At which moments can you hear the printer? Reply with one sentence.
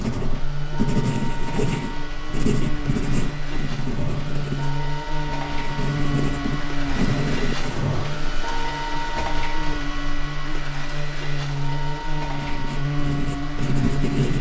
You can hear the printer from 0.0 to 14.3 s.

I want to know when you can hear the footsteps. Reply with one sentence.
The footsteps can't be heard in this clip.